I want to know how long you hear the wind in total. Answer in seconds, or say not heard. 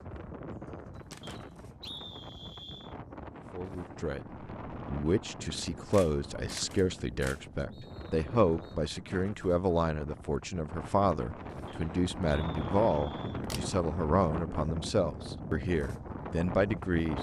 17 s.